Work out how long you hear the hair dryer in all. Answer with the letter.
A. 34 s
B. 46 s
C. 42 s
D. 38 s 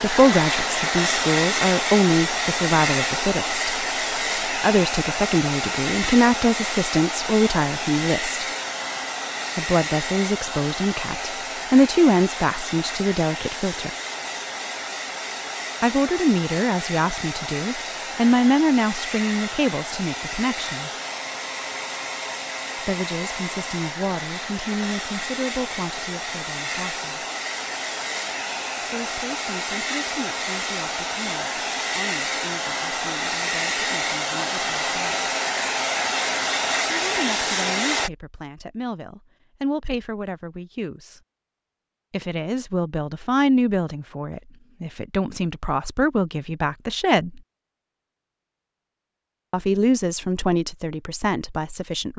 D.